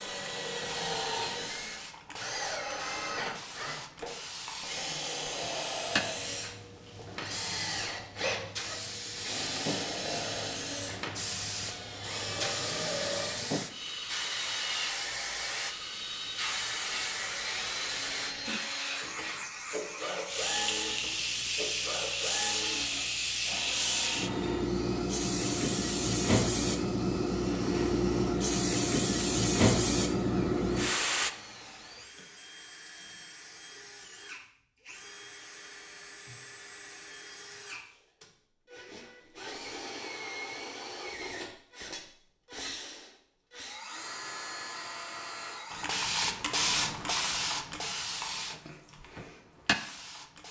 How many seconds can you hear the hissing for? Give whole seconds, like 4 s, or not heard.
36 s.